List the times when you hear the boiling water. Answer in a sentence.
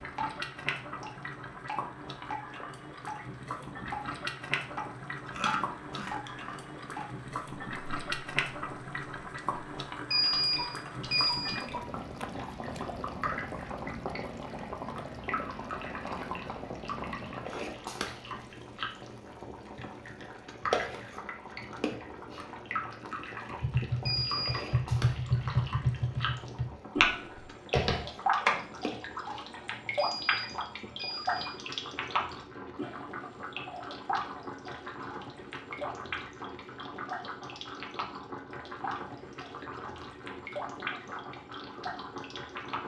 You can hear the boiling water from 0.0 to 42.8 s.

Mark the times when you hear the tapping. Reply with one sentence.
The tapping can be heard from 23.6 to 28.6 s.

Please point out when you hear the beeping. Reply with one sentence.
The beeping can be heard from 10.1 to 11.6 s, from 24.0 to 24.7 s and from 29.9 to 31.6 s.